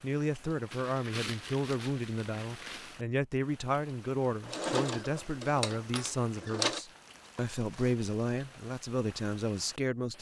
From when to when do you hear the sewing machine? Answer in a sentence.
You can hear the sewing machine from 4.5 to 6.8 s.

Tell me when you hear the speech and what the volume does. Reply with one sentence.
You can hear the speech from 0.0 to 10.1 s, at a steady volume.